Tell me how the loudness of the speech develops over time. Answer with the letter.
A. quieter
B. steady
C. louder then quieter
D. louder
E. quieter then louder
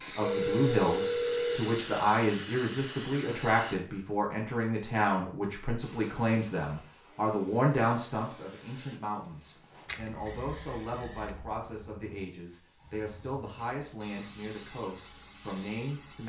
A.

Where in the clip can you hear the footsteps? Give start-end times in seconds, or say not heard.
not heard.